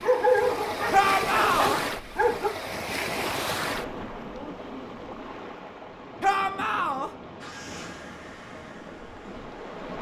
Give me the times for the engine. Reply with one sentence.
You can hear the engine from 7.4 to 9.7 s.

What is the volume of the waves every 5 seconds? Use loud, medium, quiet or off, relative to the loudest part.
loud, medium.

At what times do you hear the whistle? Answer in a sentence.
The whistle can't be heard in this clip.